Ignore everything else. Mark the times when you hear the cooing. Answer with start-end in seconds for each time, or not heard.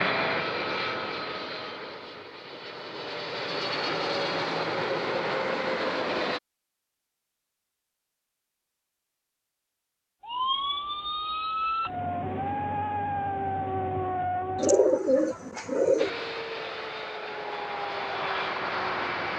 14.6-16.1.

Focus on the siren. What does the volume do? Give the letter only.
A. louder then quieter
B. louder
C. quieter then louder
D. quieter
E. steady
E.